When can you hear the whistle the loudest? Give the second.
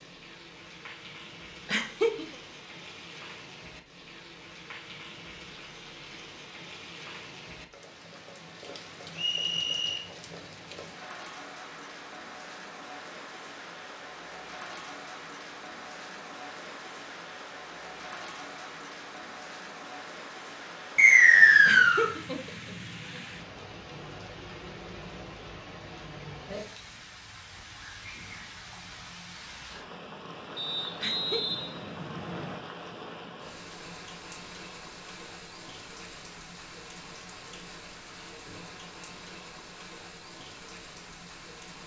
21 s.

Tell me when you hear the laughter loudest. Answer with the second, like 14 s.
2 s.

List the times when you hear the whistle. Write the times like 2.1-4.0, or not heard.
9.2-10.0, 20.9-22.1, 30.6-32.5.